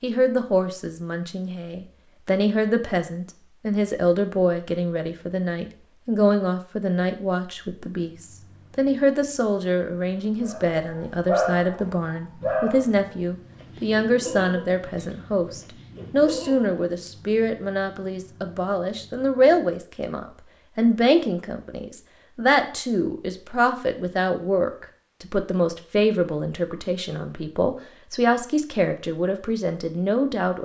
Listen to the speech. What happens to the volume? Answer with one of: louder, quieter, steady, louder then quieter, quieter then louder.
steady.